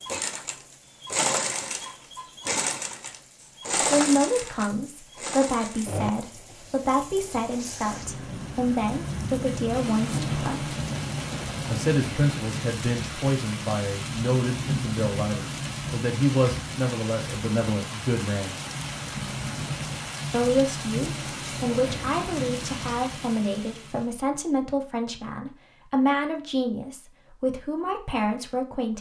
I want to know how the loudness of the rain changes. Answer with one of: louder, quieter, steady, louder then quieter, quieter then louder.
louder.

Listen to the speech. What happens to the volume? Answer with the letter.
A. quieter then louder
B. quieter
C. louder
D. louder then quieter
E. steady
E.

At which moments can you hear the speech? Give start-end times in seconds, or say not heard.
3.8-10.8, 11.7-18.6, 20.3-28.9.